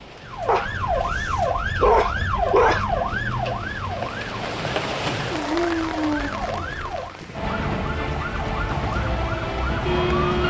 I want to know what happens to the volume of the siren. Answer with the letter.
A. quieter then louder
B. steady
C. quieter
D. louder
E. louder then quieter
A.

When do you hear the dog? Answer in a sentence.
You can hear the dog from 0.5 to 3.0 s and from 5.2 to 7.0 s.